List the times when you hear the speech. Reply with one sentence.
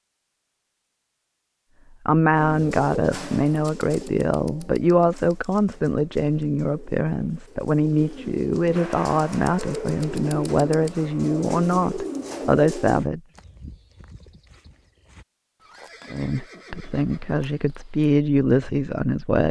The speech can be heard from 2.0 to 13.2 s and from 16.1 to 19.4 s.